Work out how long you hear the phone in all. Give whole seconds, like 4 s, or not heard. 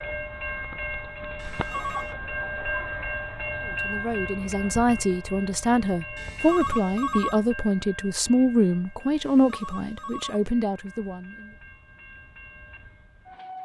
3 s.